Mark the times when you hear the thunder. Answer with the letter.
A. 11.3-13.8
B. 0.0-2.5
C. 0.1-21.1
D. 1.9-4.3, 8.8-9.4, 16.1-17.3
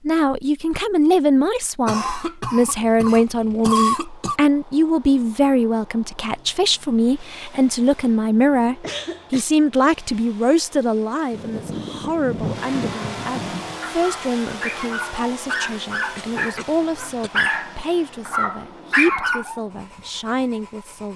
A.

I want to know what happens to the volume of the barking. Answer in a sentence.
The volume of the barking goes up.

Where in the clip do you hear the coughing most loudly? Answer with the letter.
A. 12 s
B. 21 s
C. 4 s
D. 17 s
C.